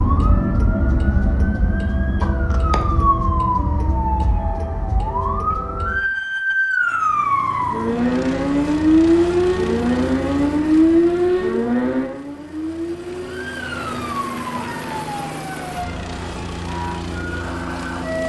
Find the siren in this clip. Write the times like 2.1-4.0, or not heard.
0.0-18.2.